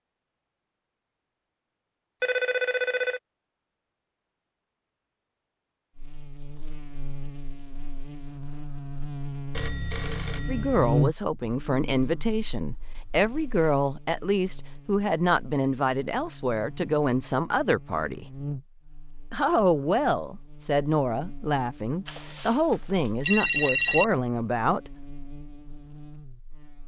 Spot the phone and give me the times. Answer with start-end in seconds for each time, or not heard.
2.2-3.2, 9.5-11.1, 22.1-24.1.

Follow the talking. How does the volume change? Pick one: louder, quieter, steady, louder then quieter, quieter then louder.
steady.